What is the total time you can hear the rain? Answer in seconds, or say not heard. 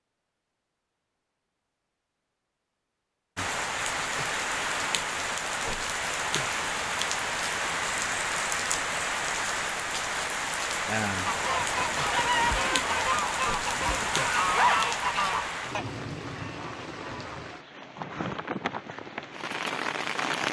17 s.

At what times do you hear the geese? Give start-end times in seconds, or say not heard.
11.2-17.4.